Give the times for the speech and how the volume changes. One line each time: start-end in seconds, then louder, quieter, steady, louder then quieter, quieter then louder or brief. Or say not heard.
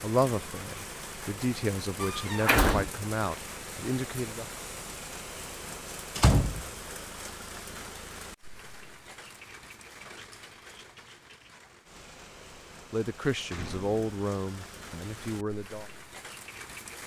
0.0-4.5 louder
12.9-15.8 brief.